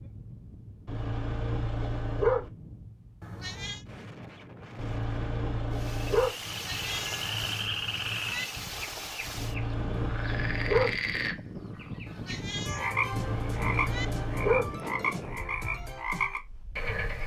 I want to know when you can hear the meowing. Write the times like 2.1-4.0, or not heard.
3.2-3.9, 6.5-8.4, 12.1-14.1.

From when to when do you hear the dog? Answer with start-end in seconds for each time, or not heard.
0.8-2.5, 4.8-6.3, 9.3-11.0, 13.1-14.7.